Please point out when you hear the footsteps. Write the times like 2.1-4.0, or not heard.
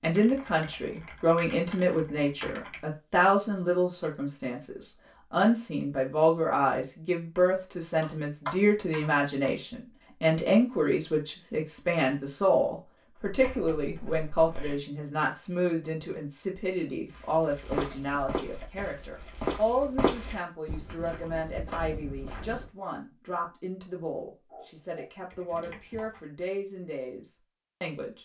17.1-22.7.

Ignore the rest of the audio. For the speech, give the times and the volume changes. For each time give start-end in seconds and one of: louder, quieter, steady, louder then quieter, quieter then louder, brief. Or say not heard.
0.0-28.2 quieter.